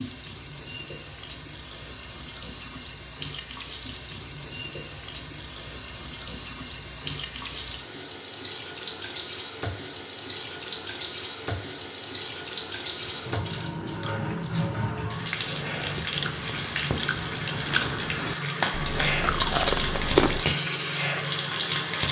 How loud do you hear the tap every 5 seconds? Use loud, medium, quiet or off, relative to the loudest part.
medium, medium, medium, loud, loud.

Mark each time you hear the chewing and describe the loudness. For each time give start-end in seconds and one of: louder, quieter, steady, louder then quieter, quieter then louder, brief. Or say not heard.
12.9-20.4 louder.